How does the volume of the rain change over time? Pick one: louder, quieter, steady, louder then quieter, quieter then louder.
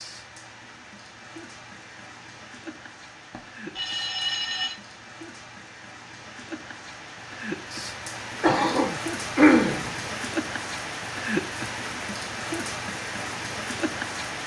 louder.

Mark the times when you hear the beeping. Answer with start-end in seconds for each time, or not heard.
3.3-4.8.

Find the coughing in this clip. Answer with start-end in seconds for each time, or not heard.
8.4-9.9.